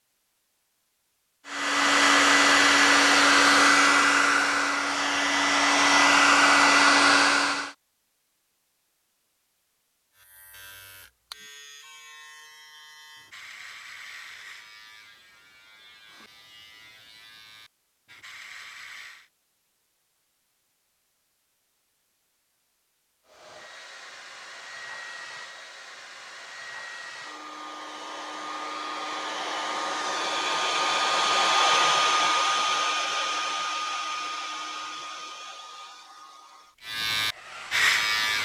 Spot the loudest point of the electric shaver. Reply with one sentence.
The volume of the electric shaver peaks at 38 seconds.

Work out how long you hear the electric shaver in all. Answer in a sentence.
The electric shaver can be heard for 11 seconds in total.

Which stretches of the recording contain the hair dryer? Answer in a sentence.
The hair dryer can be heard from 1.4 to 7.7 s and from 23.2 to 38.4 s.